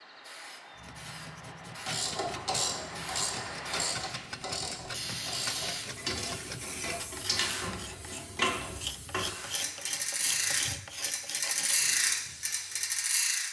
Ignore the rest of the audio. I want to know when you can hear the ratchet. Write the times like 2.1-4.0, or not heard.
1.9-13.4.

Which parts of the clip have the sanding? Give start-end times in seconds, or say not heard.
0.8-11.8.